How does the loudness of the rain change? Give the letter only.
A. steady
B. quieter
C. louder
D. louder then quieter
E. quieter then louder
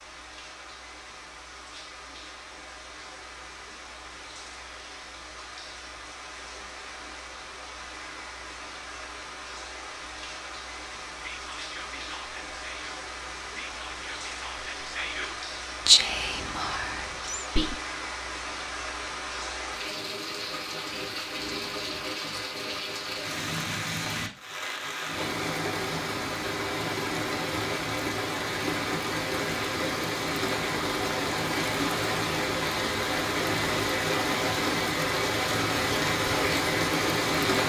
C.